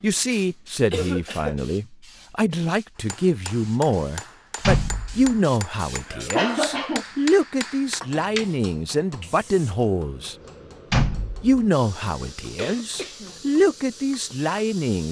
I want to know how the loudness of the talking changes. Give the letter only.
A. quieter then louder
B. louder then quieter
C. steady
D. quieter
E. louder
C.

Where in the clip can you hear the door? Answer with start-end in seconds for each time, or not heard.
4.6-5.3, 10.9-11.7.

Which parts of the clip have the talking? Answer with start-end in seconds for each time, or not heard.
0.0-10.3, 11.4-15.0.